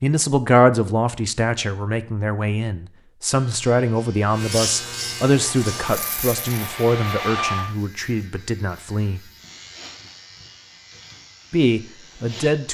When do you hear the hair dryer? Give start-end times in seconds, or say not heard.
5.3-7.8.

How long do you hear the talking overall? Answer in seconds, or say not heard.
10 s.